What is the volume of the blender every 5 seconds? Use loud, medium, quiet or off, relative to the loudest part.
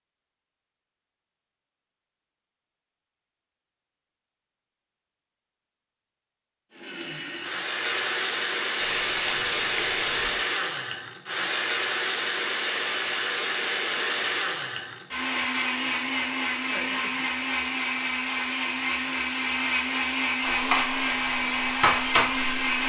off, loud, loud, loud, loud.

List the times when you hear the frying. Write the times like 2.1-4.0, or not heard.
8.8-10.3, 20.4-22.8.